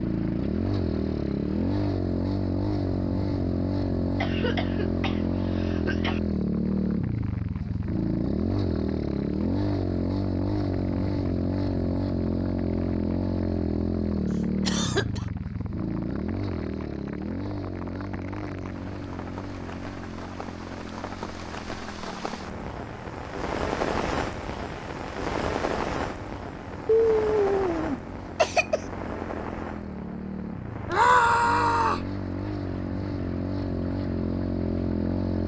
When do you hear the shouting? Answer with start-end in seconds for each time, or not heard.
30.9-32.0.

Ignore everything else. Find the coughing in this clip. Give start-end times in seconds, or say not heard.
4.2-6.2, 14.7-15.2, 26.9-28.8.